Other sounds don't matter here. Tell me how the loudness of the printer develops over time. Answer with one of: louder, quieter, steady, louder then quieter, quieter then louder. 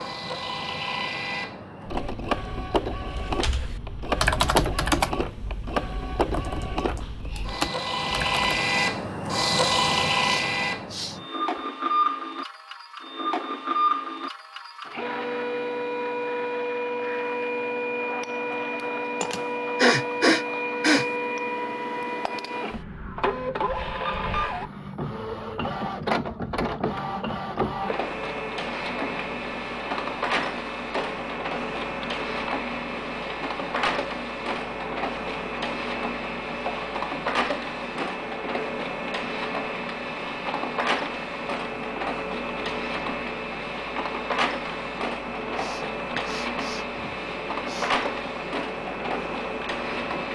steady.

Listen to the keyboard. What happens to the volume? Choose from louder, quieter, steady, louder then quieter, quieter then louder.
quieter then louder.